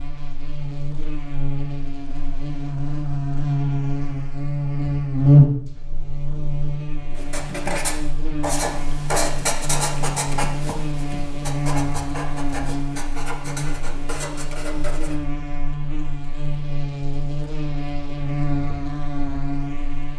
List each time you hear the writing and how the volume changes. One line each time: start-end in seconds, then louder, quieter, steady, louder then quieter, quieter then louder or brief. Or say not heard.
7.2-15.2 quieter.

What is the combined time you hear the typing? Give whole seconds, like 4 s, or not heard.
not heard.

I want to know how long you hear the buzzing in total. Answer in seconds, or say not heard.
20 s.